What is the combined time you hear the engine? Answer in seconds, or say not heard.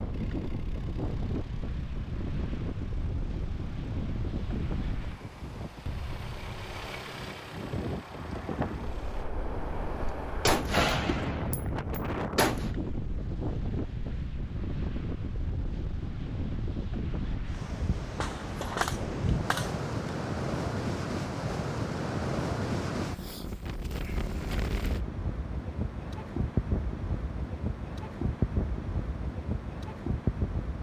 9 s.